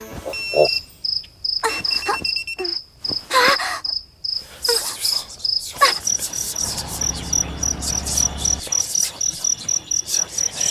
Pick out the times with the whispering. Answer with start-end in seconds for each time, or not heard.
4.4-10.6.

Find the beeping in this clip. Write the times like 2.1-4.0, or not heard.
0.3-2.6, 6.6-8.6.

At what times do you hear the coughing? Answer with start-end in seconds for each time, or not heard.
not heard.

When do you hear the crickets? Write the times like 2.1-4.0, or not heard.
0.0-10.6.